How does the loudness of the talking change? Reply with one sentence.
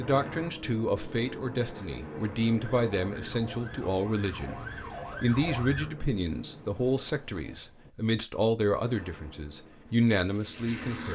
The loudness of the talking stays about the same.